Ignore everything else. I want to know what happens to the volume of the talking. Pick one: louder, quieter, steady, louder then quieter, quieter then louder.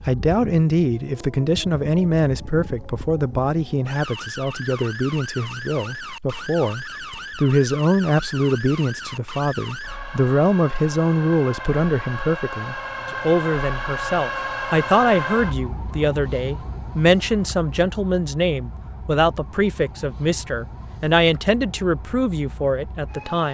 steady.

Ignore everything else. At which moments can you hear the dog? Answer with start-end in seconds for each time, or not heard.
not heard.